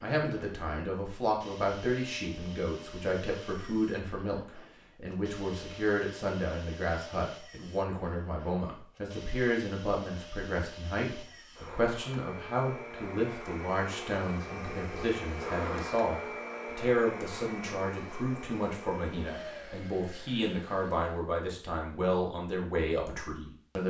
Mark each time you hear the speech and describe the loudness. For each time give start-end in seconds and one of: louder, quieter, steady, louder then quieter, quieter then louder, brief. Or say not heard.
0.0-23.8 steady.